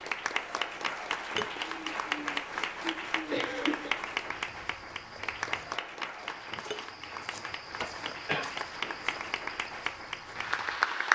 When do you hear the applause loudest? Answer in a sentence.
The volume of the applause peaks at 11 seconds.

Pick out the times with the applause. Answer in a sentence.
The applause can be heard from 0.0 to 11.1 s.